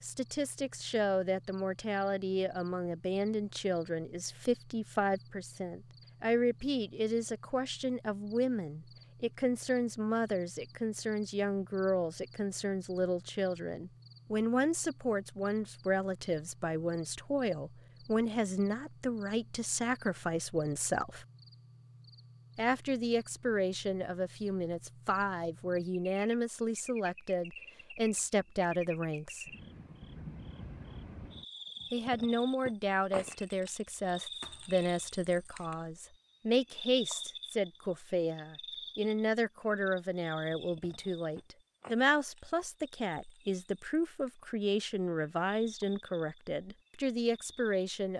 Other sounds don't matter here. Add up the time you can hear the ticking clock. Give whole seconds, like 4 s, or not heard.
not heard.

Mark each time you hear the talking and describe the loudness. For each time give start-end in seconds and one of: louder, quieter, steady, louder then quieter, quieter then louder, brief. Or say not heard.
0.0-21.2 steady
22.6-29.4 steady
31.9-48.1 steady.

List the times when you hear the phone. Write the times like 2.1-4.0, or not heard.
not heard.